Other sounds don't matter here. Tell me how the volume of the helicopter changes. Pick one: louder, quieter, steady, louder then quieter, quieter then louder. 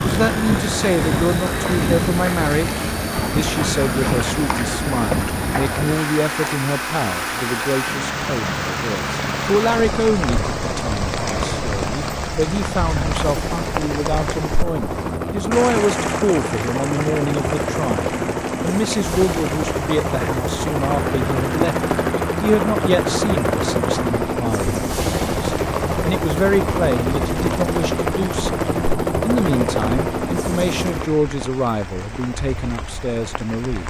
louder.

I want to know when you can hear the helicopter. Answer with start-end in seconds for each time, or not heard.
0.0-31.1.